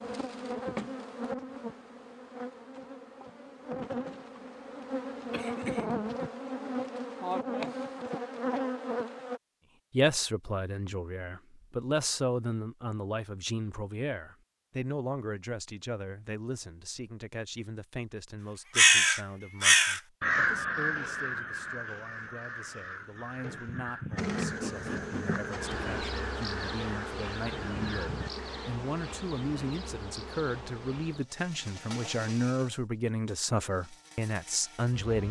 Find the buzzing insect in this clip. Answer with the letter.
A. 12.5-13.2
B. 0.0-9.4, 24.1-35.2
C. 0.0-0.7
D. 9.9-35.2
B.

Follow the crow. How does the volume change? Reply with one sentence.
The loudness of the crow goes down.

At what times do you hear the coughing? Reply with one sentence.
The coughing can be heard from 5.3 to 6.0 s.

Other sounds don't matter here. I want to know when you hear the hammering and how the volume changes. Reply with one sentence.
You can't hear the hammering here.